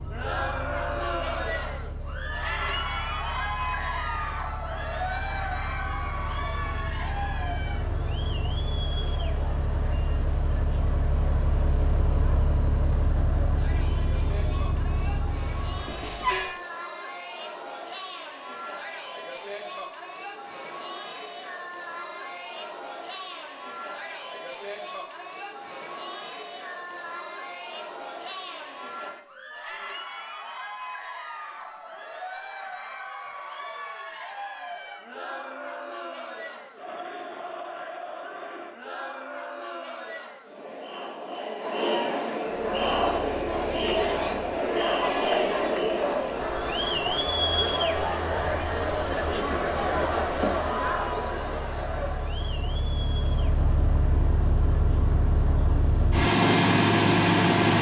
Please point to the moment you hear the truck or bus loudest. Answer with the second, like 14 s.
57 s.